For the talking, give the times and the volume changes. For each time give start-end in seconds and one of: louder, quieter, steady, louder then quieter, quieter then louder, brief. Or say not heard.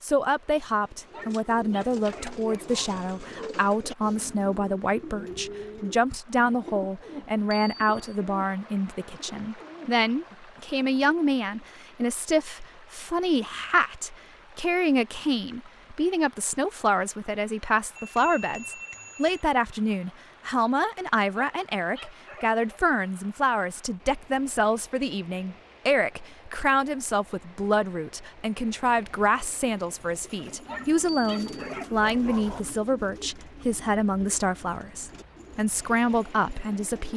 0.0-37.1 steady.